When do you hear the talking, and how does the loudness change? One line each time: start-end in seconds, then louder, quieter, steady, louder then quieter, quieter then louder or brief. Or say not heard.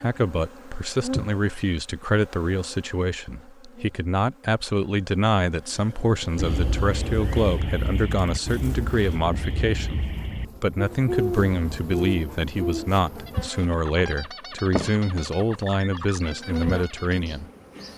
0.0-17.5 steady.